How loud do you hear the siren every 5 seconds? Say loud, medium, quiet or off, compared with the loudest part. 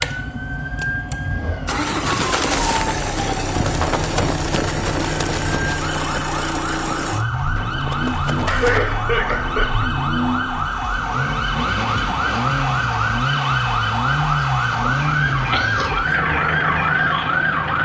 medium, medium, loud, loud.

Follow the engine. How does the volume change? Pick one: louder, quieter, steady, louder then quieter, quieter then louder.
steady.